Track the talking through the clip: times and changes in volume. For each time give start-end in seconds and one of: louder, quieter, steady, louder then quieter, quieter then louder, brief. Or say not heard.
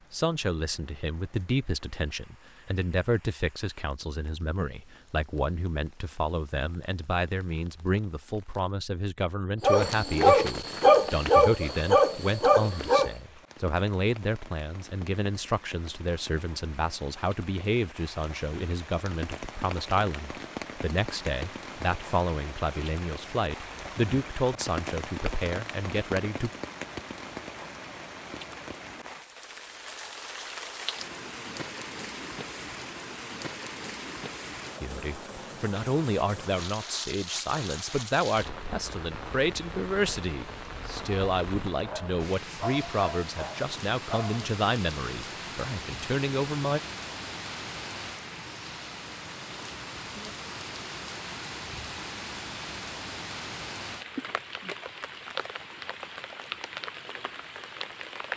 0.1-26.5 steady
34.8-46.8 steady.